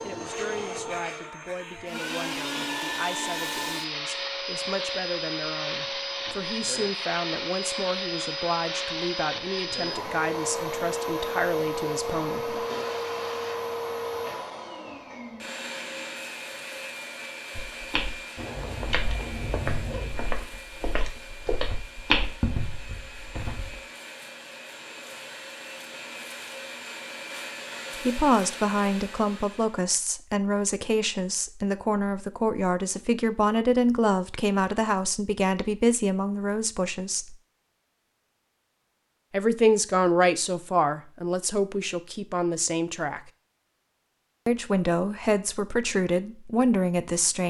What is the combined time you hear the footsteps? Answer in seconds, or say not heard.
6 s.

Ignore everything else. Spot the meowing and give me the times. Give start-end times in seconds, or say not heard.
18.4-20.1.